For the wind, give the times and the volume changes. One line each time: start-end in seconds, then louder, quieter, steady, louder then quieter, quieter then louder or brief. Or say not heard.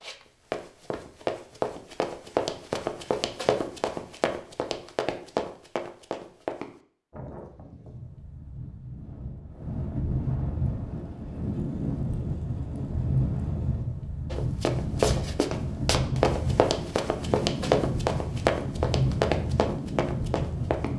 7.1-20.9 louder.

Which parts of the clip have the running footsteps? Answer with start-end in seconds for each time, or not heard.
0.0-6.8, 14.3-20.9.